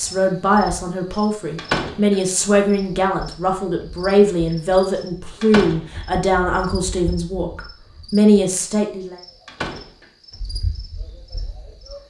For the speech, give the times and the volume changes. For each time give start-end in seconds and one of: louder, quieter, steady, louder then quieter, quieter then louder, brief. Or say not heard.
0.0-9.2 steady.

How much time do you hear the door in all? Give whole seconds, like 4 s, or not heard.
3 s.